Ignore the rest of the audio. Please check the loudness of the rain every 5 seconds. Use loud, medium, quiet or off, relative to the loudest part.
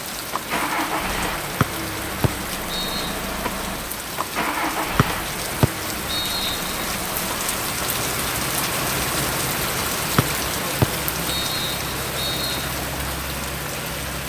medium, loud, loud.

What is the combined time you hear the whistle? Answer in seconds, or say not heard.
6 s.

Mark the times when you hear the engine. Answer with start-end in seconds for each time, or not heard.
0.1-14.2.